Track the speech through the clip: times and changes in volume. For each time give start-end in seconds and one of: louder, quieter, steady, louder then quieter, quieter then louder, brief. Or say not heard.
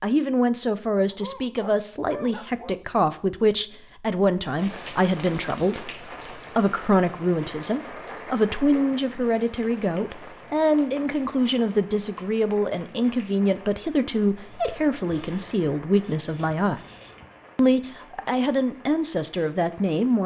0.0-16.8 steady
17.6-20.2 brief.